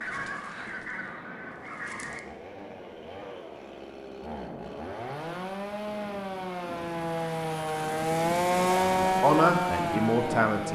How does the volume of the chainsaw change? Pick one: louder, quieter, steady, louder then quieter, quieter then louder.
louder.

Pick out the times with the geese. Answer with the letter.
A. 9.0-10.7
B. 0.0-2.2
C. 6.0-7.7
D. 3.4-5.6
B.